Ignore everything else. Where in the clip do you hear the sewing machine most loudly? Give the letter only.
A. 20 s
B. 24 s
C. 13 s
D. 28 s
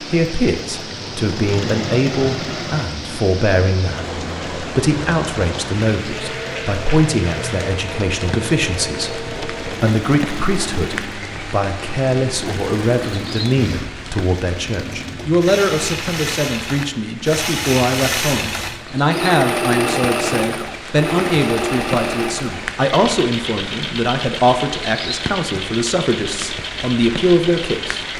A.